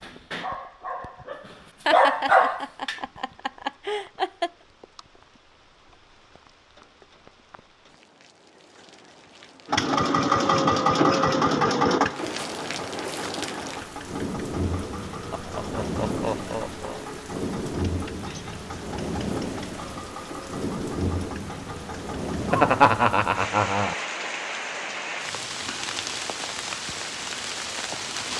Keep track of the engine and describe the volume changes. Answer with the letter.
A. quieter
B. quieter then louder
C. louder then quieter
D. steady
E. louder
A.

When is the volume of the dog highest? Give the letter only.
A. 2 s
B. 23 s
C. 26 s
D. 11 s
A.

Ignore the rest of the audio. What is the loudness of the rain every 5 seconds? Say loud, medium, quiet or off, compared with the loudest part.
quiet, quiet, loud, loud, loud, loud.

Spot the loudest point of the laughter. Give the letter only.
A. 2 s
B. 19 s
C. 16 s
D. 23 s
D.